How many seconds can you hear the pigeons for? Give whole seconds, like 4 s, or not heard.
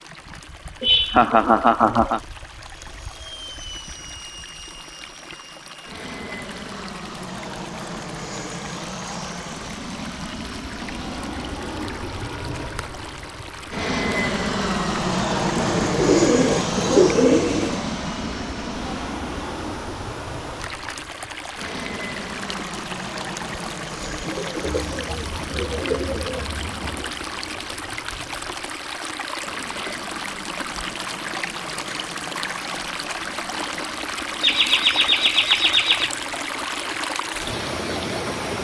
5 s.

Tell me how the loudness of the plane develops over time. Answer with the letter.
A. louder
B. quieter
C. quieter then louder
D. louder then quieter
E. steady
D.